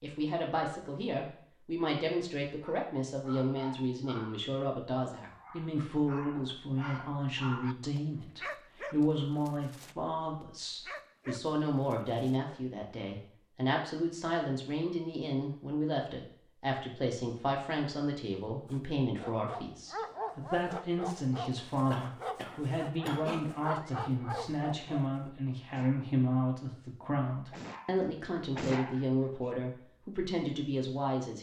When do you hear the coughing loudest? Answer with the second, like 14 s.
23 s.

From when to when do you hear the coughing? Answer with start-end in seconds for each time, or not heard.
21.9-23.4.